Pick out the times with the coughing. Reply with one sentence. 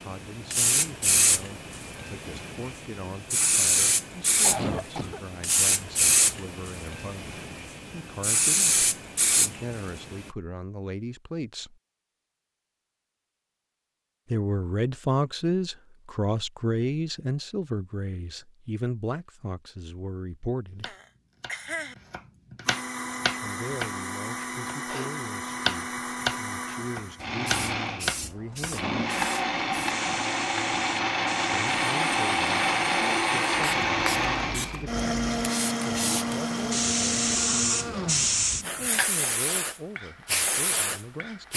The coughing can be heard from 4.2 to 5.2 s and from 20.9 to 21.9 s.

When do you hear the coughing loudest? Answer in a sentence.
The volume of the coughing peaks at 5 seconds.